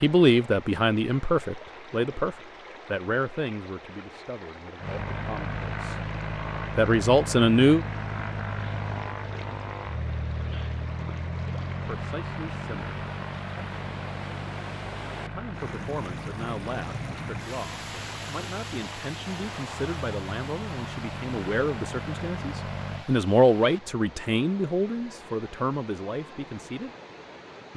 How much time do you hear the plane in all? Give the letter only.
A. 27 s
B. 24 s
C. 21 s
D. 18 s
D.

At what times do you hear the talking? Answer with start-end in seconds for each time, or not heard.
0.0-6.0, 6.8-7.8, 11.8-12.9, 15.2-26.9.